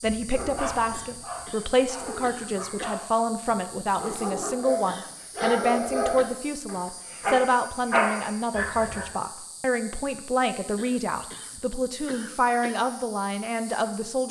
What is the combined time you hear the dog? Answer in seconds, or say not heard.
9 s.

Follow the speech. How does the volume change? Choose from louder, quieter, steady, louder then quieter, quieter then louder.
steady.